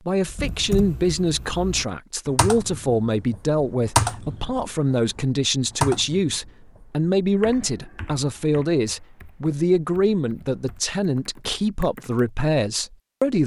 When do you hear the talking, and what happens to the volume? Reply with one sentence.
The talking can be heard from 0.1 to 13.4 s, at a steady volume.